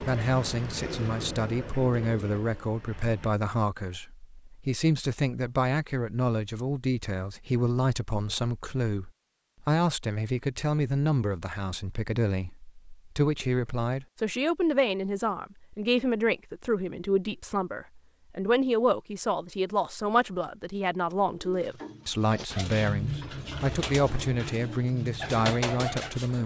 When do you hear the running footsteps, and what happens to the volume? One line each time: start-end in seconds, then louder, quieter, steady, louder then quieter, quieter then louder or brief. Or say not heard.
not heard.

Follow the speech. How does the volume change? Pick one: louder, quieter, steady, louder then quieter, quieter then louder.
steady.